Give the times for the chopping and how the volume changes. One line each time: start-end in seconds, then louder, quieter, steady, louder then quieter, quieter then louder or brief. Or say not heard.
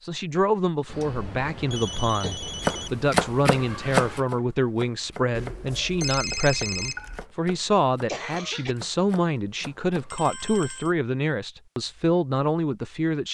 2.6-10.3 quieter.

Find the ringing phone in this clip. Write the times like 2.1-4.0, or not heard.
0.8-2.9, 5.3-7.2, 10.1-10.9.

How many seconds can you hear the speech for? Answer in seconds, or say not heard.
13 s.